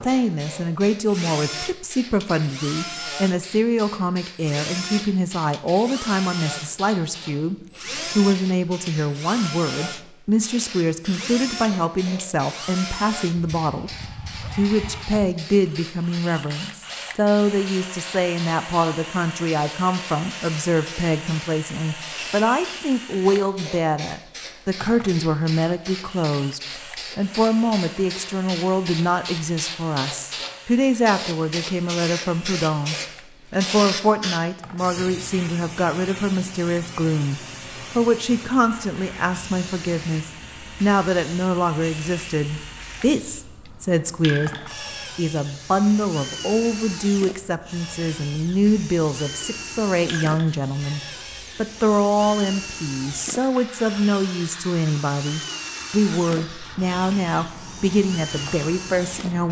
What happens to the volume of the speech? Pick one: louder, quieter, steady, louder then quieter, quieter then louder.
steady.